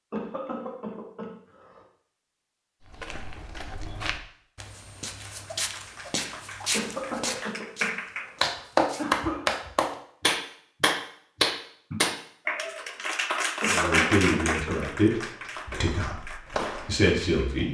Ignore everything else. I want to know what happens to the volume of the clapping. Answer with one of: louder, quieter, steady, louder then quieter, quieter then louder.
louder then quieter.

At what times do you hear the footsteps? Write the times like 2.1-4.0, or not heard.
2.8-9.2, 15.6-17.6.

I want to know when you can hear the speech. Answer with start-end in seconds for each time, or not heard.
13.7-17.6.